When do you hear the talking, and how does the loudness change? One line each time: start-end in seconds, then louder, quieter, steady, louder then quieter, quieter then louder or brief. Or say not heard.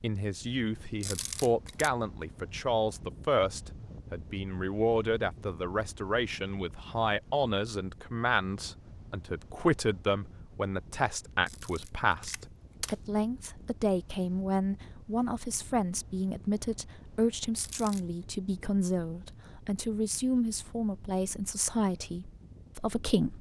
0.0-23.3 steady.